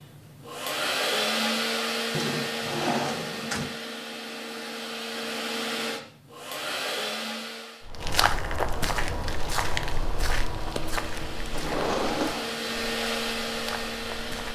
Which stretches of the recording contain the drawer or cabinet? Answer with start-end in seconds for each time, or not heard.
2.1-3.8, 11.5-13.0.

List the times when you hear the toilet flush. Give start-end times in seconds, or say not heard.
not heard.